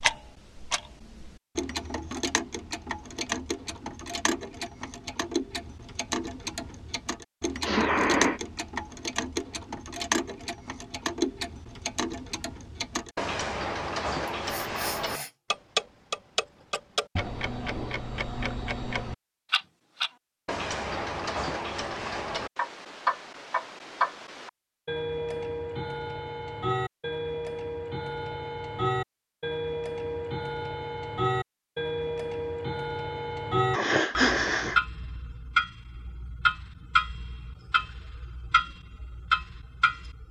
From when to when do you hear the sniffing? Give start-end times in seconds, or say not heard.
7.6-8.4, 14.4-15.3, 33.7-34.8.